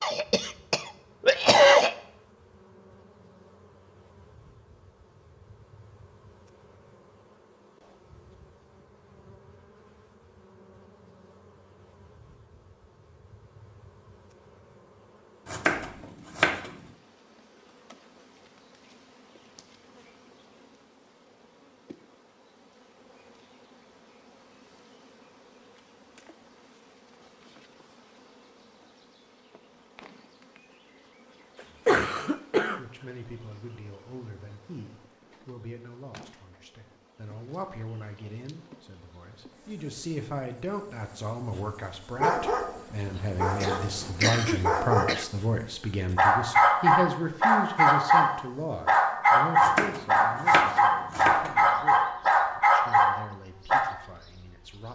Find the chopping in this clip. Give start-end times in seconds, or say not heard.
15.4-16.8, 49.5-51.7.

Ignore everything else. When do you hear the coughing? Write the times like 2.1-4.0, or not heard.
0.0-1.9, 31.9-32.8, 43.6-45.2.